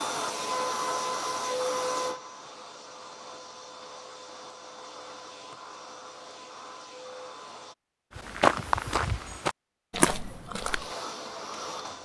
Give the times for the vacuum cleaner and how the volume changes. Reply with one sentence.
The vacuum cleaner can be heard from 0.0 to 7.8 s, getting quieter; and briefly from 10.5 to 12.0 s.